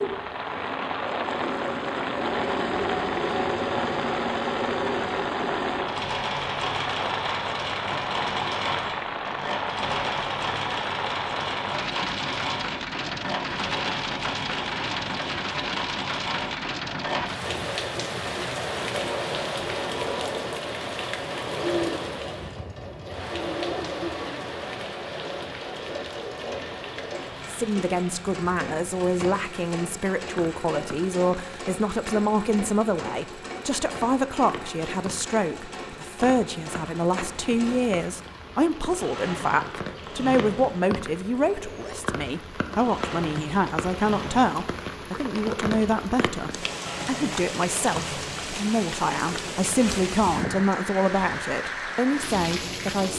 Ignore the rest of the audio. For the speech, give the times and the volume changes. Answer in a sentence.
You can hear the speech from 27.5 to 53.1 s, at a steady volume.